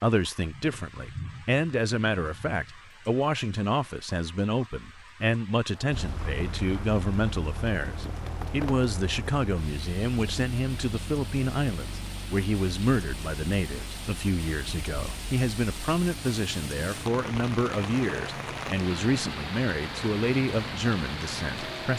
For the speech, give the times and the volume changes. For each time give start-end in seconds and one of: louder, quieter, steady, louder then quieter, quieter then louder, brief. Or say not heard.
0.0-21.9 steady.